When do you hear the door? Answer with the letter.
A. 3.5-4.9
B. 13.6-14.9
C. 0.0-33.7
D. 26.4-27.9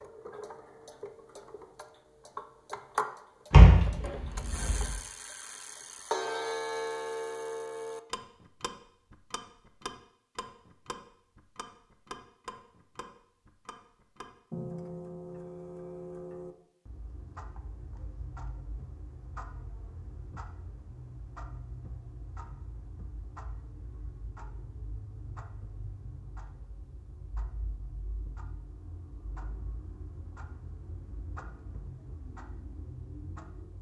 A.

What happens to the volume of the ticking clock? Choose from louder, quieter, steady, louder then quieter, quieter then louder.
quieter.